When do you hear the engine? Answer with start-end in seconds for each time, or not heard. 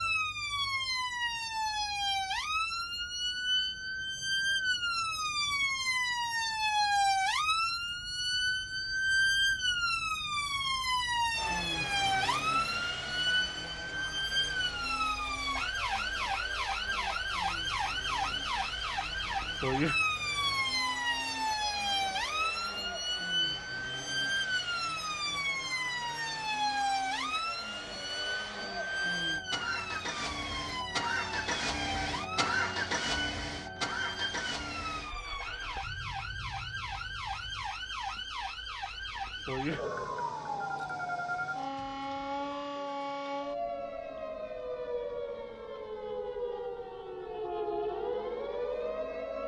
11.3-37.8.